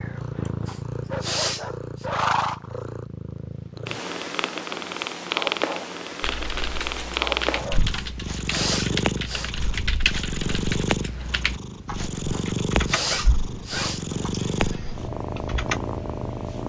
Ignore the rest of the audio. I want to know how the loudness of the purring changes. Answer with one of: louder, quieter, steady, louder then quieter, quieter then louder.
steady.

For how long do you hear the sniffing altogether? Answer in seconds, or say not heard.
5 s.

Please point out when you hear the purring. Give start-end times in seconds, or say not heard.
0.0-16.6.